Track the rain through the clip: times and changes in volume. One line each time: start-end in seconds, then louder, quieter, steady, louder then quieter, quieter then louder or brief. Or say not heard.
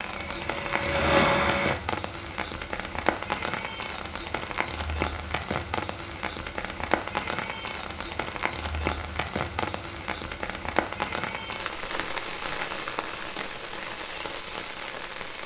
0.0-15.4 steady.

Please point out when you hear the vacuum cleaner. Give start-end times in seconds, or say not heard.
0.1-1.8.